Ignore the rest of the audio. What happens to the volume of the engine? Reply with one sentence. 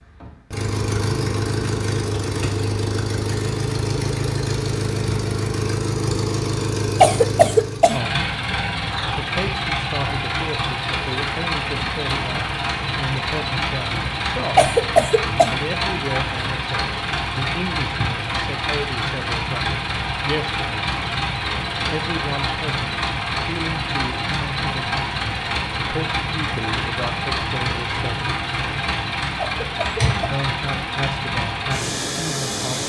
The loudness of the engine stays about the same.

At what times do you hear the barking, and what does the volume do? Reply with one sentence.
The barking can't be heard in this clip.